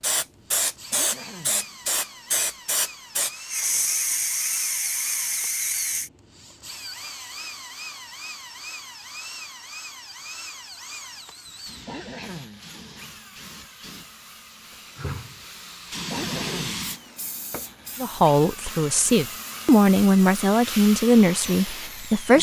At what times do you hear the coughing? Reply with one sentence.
You can hear the coughing from 0.9 to 1.6 s, from 11.8 to 12.7 s and from 16.1 to 16.9 s.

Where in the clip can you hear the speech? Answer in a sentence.
You can hear the speech from 18.0 to 22.3 s.